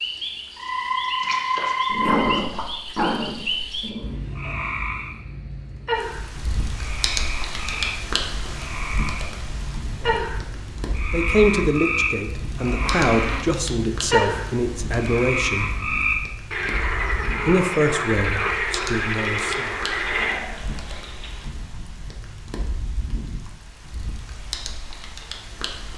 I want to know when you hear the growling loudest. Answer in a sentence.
The volume of the growling peaks at 2 seconds.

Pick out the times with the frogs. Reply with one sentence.
You can hear the frogs from 0.0 to 20.4 s.